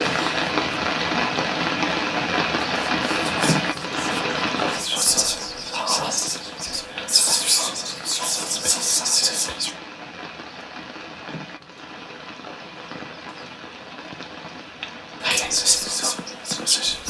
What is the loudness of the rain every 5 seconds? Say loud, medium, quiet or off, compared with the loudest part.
loud, quiet, quiet, quiet.